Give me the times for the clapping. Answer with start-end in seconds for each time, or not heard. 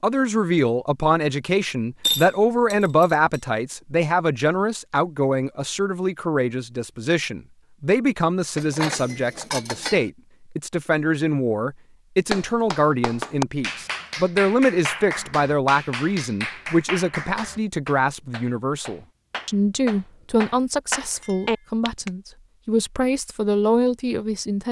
12.3-22.1.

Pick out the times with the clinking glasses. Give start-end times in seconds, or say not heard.
2.0-3.4, 8.6-10.1, 21.2-21.6.